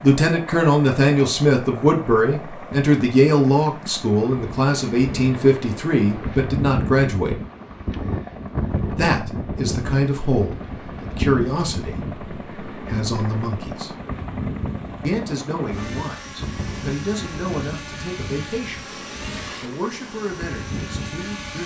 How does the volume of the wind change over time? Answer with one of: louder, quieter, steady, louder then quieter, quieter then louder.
quieter.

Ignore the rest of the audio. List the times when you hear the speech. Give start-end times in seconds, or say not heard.
0.0-7.4, 8.9-13.9, 15.0-19.0, 19.6-21.6.